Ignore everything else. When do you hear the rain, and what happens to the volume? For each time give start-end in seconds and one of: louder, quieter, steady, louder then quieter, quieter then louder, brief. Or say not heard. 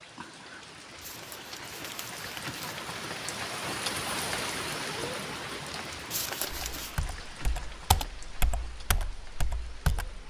0.0-10.2 louder then quieter.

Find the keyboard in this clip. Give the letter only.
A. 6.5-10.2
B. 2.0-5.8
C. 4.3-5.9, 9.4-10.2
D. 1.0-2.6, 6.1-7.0
A.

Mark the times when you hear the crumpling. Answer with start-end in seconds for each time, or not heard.
1.0-2.6, 6.1-7.0.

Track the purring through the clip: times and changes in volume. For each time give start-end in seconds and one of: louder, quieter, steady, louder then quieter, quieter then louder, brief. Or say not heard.
not heard.